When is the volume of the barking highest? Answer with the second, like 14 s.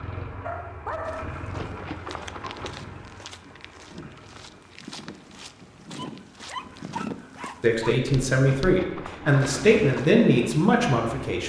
1 s.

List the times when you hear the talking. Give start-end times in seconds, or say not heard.
7.6-11.4.